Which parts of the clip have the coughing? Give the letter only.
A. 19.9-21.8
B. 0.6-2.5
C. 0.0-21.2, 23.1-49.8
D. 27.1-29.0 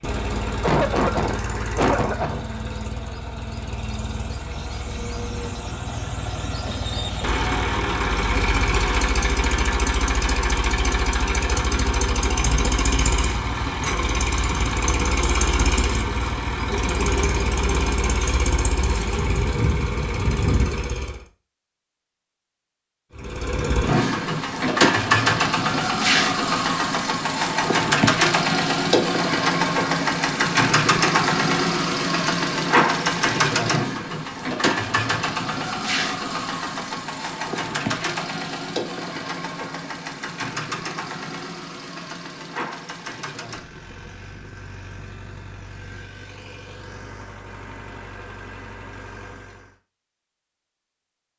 B.